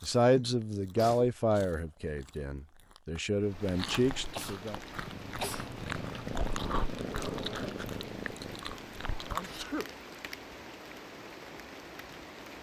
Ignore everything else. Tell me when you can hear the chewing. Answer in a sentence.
You can hear the chewing from 0.0 to 9.6 s.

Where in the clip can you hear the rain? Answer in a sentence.
You can hear the rain from 3.4 to 12.5 s.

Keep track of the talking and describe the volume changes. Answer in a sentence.
The volume of the talking goes down, then up.